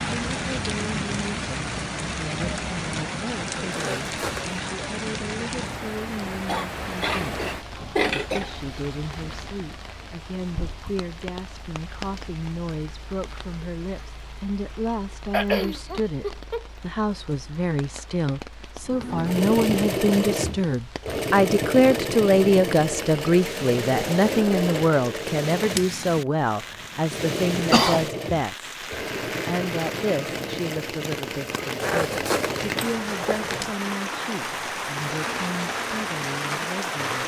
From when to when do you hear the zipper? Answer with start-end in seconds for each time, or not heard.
3.7-4.6, 31.8-33.7.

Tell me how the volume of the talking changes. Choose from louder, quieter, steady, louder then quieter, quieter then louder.
louder then quieter.